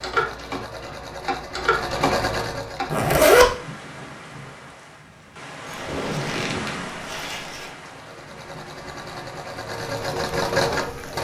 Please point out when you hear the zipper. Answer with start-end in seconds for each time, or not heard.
2.9-3.5, 5.7-7.7.